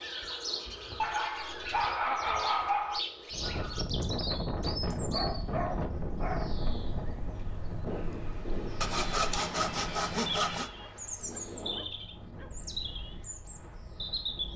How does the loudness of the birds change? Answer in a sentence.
The loudness of the birds goes down, then up.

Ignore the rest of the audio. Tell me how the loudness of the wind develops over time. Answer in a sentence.
The loudness of the wind goes down.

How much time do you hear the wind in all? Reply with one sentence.
You can hear the wind for 11 seconds altogether.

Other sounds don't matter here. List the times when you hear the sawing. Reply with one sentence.
The sawing can be heard from 8.8 to 10.7 s.